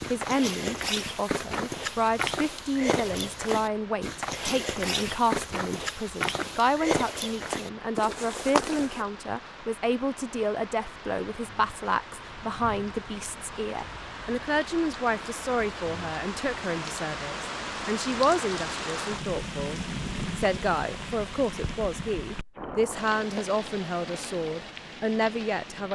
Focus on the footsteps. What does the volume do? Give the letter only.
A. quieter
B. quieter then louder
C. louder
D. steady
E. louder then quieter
D.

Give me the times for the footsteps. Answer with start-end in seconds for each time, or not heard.
0.0-9.1.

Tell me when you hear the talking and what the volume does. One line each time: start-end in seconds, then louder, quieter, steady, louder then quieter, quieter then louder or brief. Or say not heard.
0.1-25.9 steady.